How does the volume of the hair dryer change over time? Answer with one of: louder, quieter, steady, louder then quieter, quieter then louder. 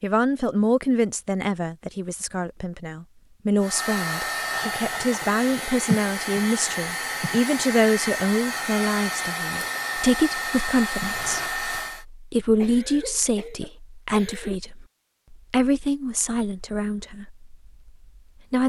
steady.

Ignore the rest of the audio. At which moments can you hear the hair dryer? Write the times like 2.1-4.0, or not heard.
3.5-12.1.